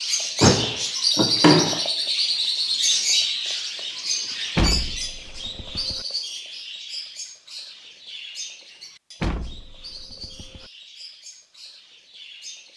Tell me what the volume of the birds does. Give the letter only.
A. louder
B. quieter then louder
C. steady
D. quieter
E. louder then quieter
D.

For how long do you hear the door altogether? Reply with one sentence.
You can hear the door for 4 seconds altogether.